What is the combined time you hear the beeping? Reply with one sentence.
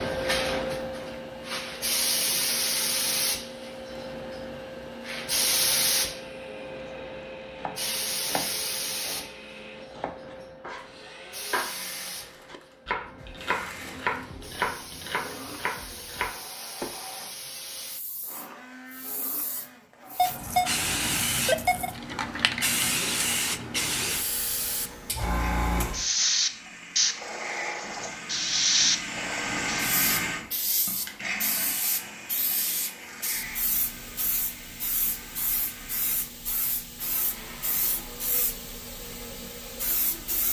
The beeping can be heard for 2 seconds in total.